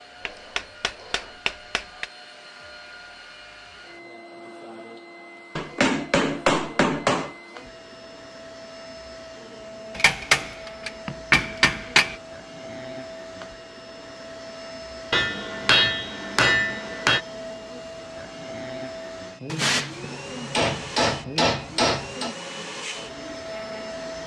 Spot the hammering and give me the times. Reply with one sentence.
You can hear the hammering from 0.2 to 2.0 s, from 5.5 to 7.3 s, from 9.9 to 12.2 s, from 15.1 to 17.2 s and from 19.4 to 22.4 s.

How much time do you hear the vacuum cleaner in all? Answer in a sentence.
You can hear the vacuum cleaner for 24 seconds altogether.